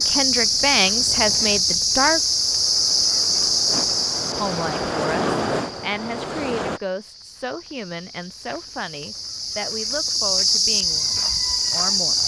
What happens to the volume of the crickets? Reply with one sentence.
The volume of the crickets goes down, then up.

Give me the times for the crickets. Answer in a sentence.
The crickets can be heard from 0.0 to 12.2 s.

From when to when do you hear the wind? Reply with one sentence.
You can hear the wind from 0.0 to 6.8 s.